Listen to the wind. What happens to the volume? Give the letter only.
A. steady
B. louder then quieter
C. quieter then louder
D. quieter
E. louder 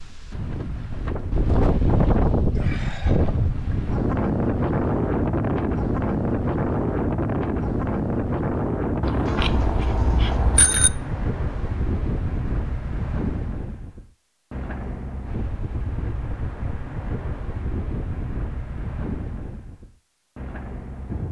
D.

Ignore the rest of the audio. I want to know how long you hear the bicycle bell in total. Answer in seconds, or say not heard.
2 s.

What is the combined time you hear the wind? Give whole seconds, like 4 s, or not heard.
21 s.